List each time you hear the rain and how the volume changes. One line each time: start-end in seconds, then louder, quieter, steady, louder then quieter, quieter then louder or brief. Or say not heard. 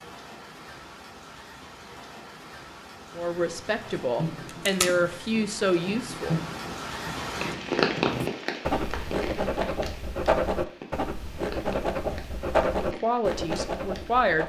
0.0-14.3 louder then quieter.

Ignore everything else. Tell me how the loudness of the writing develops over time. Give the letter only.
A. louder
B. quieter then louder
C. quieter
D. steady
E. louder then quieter
A.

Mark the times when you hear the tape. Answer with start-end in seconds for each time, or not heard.
4.5-5.2.